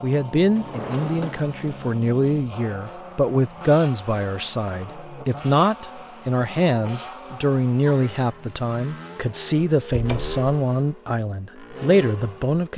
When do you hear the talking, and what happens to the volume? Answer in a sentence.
The talking can be heard from 0.0 to 12.7 s, at a steady volume.